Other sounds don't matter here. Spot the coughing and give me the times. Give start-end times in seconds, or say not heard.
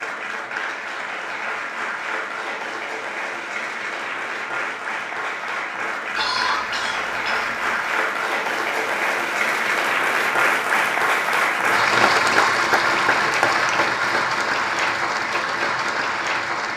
6.2-7.8.